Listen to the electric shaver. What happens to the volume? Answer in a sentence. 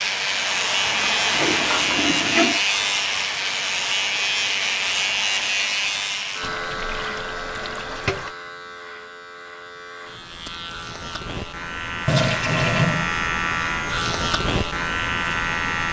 The loudness of the electric shaver goes down, then up.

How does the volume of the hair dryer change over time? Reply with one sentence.
The loudness of the hair dryer goes down.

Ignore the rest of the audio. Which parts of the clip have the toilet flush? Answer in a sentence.
The toilet flush can be heard from 0.8 to 2.6 s, from 6.4 to 8.3 s and from 12.1 to 13.1 s.